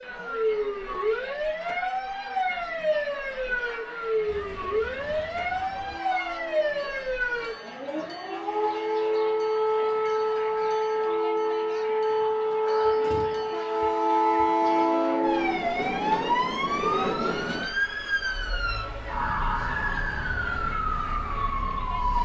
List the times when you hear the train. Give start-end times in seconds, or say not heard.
4.2-17.6.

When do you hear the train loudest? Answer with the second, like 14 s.
15 s.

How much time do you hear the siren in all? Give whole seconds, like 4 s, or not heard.
22 s.